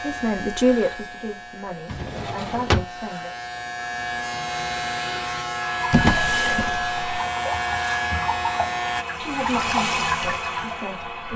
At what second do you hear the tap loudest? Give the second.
10 s.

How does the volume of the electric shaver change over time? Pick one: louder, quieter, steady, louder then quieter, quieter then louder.
louder.